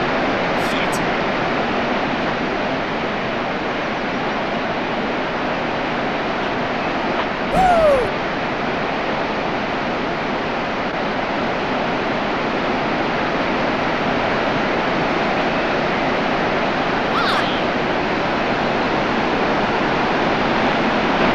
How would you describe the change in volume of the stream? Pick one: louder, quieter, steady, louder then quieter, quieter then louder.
steady.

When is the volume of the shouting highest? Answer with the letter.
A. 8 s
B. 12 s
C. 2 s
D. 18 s
A.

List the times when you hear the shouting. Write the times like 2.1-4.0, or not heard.
0.6-1.0, 7.5-8.1, 17.1-17.6.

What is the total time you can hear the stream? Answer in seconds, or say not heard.
21 s.